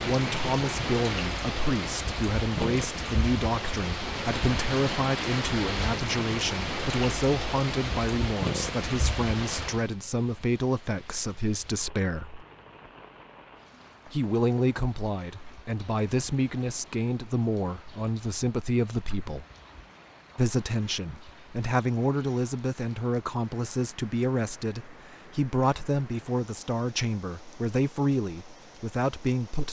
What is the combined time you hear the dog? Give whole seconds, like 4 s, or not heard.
not heard.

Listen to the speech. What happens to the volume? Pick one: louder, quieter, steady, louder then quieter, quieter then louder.
steady.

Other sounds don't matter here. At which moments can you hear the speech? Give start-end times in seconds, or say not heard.
0.0-12.4, 14.1-19.4, 20.4-29.6.